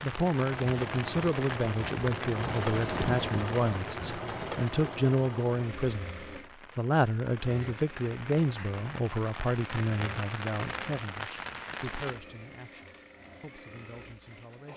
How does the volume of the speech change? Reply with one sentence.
The volume of the speech goes down.